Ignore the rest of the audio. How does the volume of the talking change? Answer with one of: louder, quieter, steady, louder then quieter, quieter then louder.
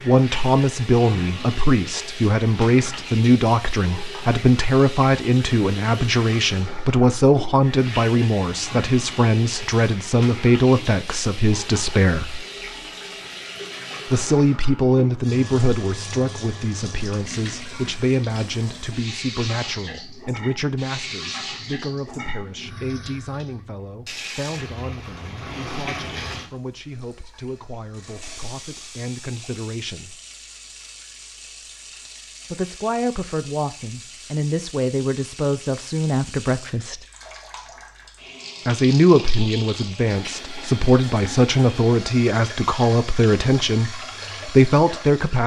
quieter then louder.